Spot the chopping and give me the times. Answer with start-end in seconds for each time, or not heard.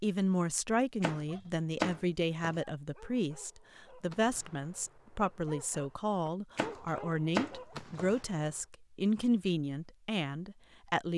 1.0-2.6, 6.5-8.2.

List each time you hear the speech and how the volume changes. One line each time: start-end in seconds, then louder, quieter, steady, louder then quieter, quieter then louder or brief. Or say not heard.
0.0-11.1 steady.